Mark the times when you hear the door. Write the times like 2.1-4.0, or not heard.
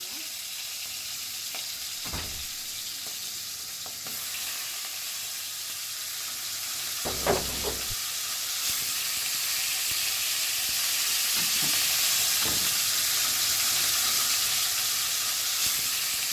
1.7-2.6, 7.0-8.0, 12.4-13.2.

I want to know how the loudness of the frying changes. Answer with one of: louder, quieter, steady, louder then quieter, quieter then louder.
louder.